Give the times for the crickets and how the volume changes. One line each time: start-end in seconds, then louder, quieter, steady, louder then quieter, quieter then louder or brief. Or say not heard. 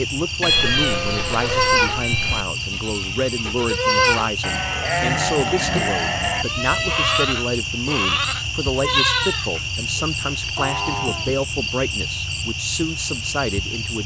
0.0-14.0 steady.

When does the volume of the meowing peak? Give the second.
1 s.